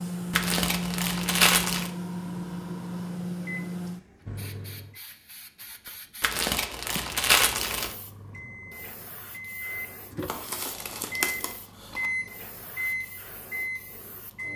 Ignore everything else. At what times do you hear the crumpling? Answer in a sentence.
You can hear the crumpling from 0.3 to 1.9 s, from 6.2 to 8.0 s and from 10.2 to 12.1 s.